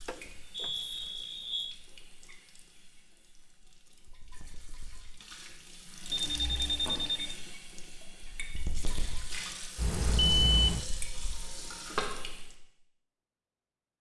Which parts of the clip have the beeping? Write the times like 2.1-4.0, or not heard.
0.1-1.8, 6.1-7.3, 9.8-10.8.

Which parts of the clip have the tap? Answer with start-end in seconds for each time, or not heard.
0.0-12.5.